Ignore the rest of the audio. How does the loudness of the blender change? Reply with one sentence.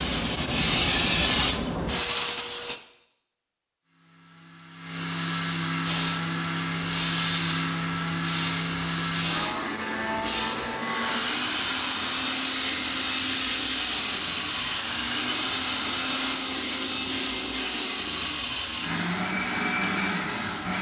The loudness of the blender stays about the same.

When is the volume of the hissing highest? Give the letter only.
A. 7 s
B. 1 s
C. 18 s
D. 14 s
B.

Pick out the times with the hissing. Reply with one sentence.
You can hear the hissing from 0.0 to 2.8 s and from 5.8 to 20.7 s.